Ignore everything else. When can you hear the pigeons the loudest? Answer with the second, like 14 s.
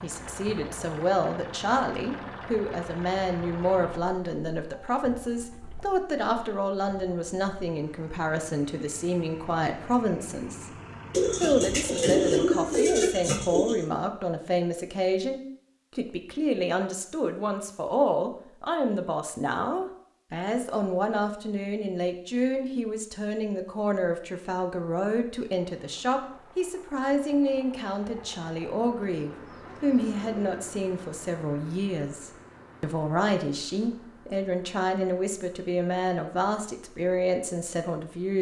12 s.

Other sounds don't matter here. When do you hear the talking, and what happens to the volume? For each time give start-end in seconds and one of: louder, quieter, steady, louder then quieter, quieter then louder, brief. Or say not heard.
0.0-10.8 steady
11.4-38.3 steady.